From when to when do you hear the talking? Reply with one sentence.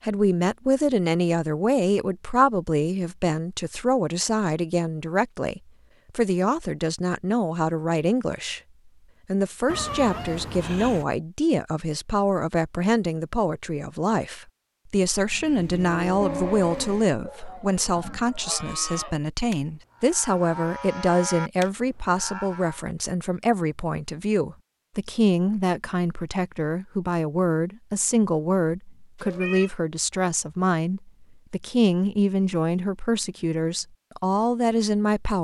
The talking can be heard from 0.0 to 8.6 s and from 9.2 to 35.3 s.